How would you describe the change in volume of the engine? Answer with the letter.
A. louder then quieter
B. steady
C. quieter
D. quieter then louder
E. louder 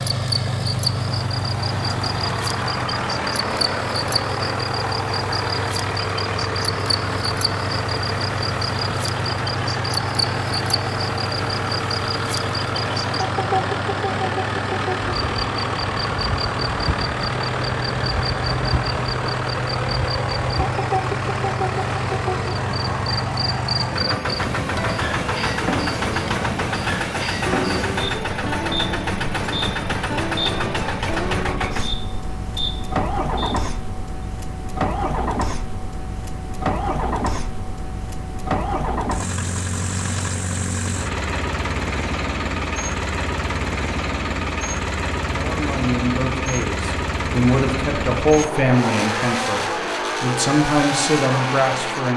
B.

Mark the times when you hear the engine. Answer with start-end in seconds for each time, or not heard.
0.0-52.1.